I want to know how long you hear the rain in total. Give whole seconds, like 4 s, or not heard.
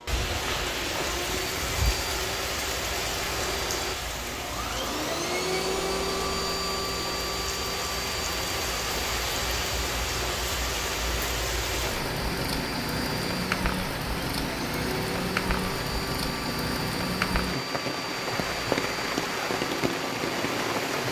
21 s.